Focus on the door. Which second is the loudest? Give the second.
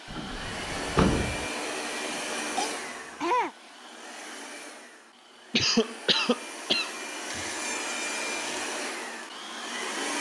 1 s.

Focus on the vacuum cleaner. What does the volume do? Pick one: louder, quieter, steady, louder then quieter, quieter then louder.
quieter then louder.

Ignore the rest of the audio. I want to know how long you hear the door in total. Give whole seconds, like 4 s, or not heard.
3 s.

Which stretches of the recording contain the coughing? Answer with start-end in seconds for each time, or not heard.
1.6-3.5, 5.5-6.9.